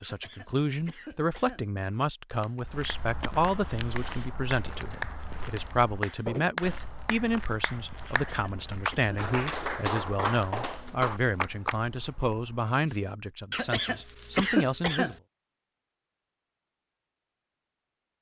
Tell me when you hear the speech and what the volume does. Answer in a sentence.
The speech can be heard from 0.0 to 15.2 s, at a steady volume.